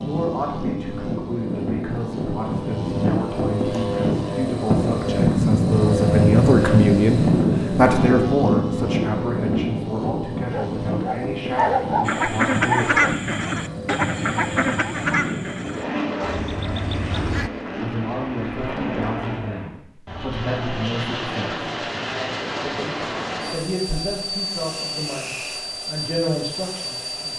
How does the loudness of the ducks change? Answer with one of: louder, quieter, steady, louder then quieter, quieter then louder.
quieter.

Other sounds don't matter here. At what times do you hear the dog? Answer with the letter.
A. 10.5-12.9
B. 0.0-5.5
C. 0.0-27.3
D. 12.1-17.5
A.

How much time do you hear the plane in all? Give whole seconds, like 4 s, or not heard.
27 s.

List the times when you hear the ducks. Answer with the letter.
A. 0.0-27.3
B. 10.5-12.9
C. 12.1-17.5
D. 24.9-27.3
C.